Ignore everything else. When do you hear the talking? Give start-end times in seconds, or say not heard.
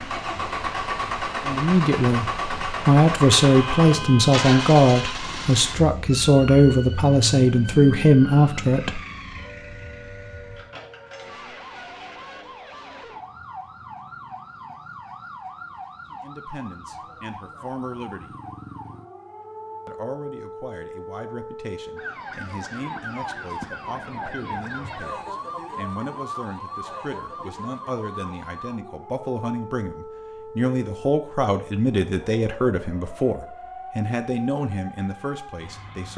1.4-9.0, 16.1-18.4, 19.9-36.1.